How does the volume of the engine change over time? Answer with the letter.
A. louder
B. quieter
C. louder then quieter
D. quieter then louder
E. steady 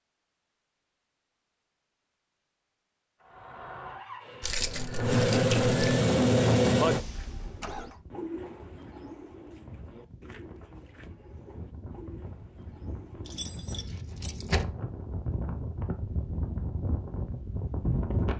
C.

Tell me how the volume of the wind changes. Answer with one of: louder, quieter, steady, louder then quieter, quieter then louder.
louder.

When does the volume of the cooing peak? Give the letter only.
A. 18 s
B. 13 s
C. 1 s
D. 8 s
D.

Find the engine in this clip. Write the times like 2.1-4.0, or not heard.
3.2-8.0.